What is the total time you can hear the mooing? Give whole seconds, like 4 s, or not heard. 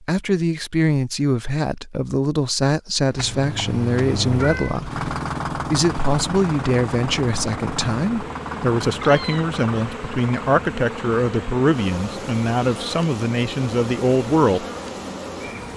not heard.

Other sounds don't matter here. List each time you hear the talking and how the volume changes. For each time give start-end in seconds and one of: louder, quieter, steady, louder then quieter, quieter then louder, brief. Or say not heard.
0.0-14.7 steady.